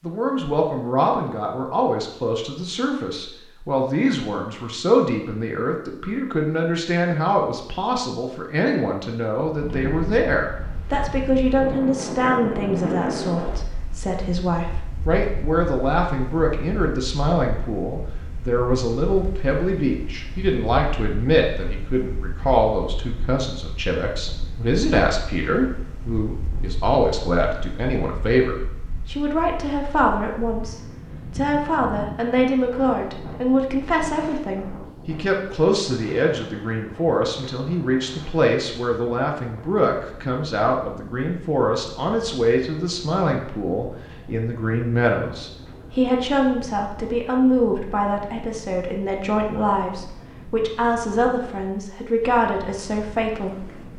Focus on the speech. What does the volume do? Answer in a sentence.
The loudness of the speech stays about the same.